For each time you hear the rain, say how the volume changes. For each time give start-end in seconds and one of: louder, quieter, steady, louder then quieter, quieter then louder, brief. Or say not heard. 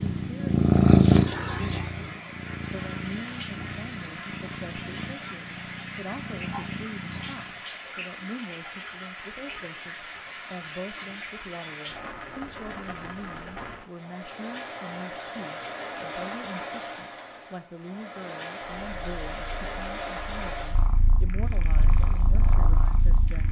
0.0-23.4 steady.